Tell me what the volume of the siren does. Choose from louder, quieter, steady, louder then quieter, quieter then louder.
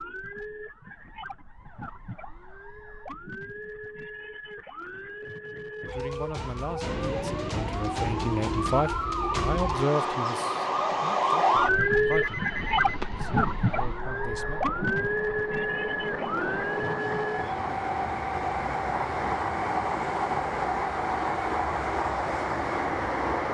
louder then quieter.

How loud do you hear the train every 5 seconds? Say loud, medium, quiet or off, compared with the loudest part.
off, medium, quiet, loud, loud.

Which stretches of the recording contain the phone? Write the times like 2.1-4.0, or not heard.
12.0-13.2.